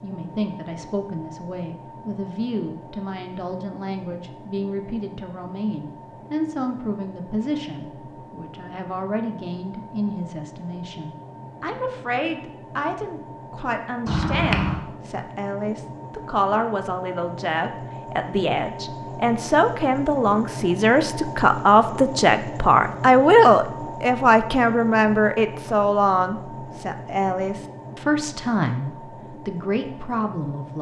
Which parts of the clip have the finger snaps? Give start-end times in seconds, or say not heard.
14.1-14.8.